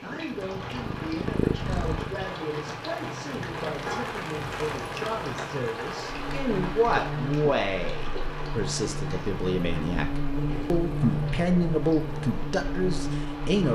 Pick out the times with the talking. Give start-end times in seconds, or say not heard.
0.0-13.6.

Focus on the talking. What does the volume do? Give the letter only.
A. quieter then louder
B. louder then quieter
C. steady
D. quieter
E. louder
E.